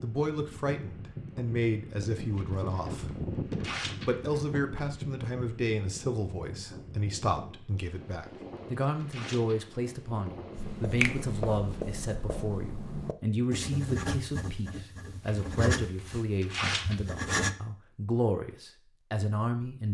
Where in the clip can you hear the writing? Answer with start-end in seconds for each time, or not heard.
10.5-17.6.